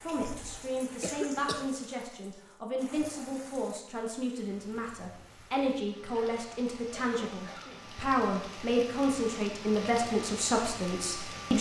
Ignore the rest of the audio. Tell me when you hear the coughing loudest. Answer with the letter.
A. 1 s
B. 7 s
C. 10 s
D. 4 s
A.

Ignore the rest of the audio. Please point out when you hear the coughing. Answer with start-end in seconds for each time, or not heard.
0.9-2.0, 6.1-8.1.